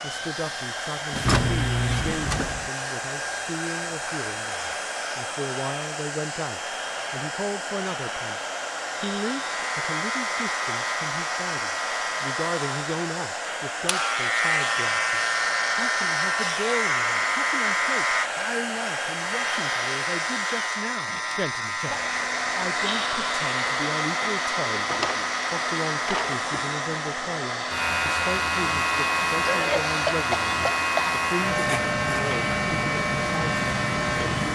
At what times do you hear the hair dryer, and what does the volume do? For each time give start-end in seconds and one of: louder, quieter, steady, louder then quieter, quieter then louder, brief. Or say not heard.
0.0-34.5 steady.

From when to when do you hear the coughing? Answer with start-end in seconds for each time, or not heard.
1.2-2.0, 29.4-31.1.